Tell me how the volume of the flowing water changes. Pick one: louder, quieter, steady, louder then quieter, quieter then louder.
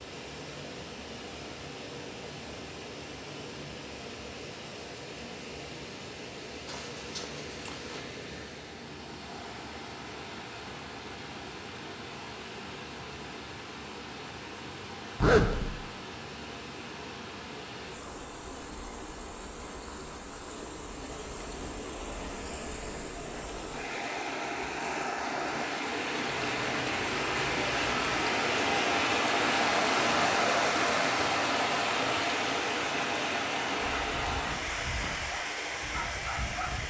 louder.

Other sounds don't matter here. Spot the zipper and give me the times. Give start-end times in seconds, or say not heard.
6.7-8.1, 15.2-15.8, 26.2-28.3.